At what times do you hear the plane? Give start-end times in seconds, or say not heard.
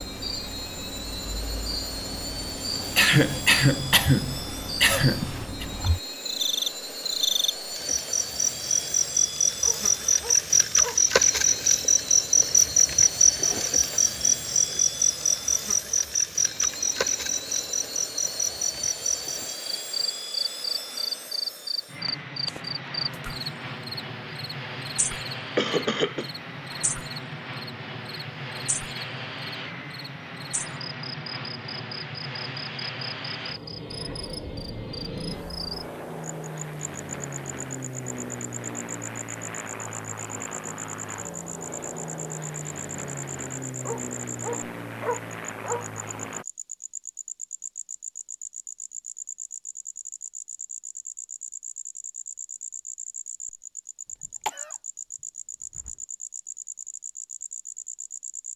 0.0-46.5.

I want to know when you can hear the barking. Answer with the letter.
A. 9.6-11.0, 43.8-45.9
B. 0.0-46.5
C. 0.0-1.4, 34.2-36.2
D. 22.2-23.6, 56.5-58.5
A.